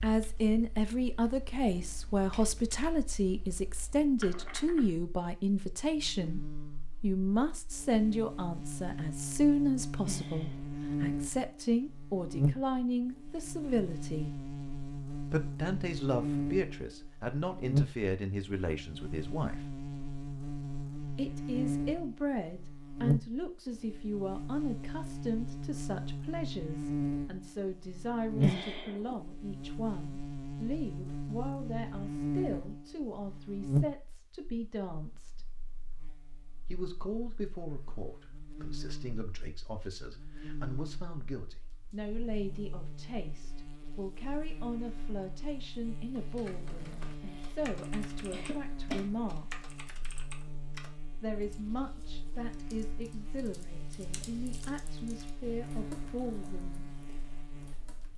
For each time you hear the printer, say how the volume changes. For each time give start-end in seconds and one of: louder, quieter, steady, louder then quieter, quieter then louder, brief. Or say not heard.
not heard.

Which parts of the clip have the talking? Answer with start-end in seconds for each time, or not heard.
0.0-14.3, 15.2-19.6, 21.1-35.5, 36.6-49.6, 51.2-56.9.